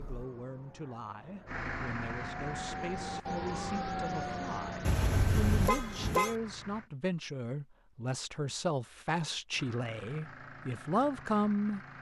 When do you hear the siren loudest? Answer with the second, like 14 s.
4 s.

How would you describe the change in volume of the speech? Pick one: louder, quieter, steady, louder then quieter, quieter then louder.
louder.